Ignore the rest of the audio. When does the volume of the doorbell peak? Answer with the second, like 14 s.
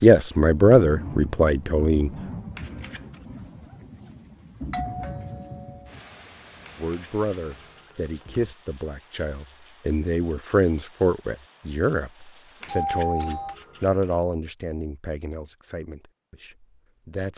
13 s.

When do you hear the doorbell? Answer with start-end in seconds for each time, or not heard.
4.7-5.8, 12.6-13.6.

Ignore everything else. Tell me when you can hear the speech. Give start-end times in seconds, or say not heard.
0.0-2.1, 6.8-17.3.